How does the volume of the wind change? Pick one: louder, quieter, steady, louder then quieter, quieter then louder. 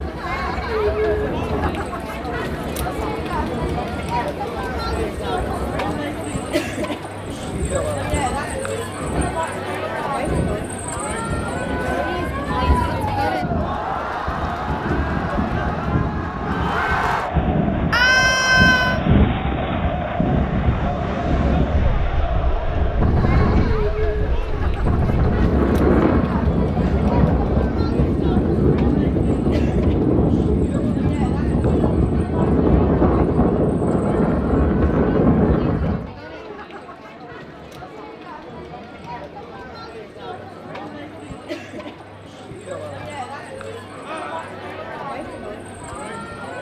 louder.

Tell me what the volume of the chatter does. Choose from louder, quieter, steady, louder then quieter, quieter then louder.
quieter.